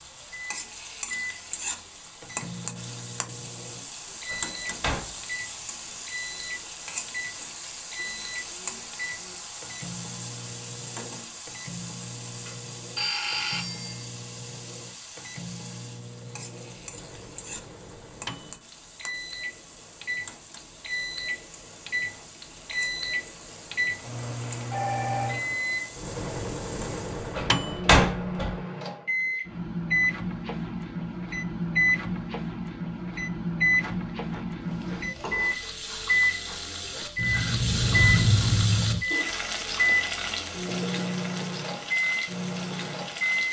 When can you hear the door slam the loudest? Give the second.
28 s.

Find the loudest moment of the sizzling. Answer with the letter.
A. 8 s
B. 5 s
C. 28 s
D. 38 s
D.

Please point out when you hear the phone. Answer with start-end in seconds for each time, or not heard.
12.9-14.1, 24.6-25.4.